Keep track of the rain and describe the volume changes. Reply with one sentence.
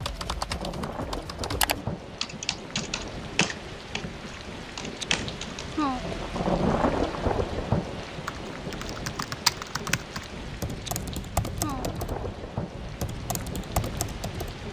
The volume of the rain goes up, then down.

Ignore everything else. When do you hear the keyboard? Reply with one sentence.
The keyboard can be heard from 0.0 to 5.8 s and from 8.1 to 14.6 s.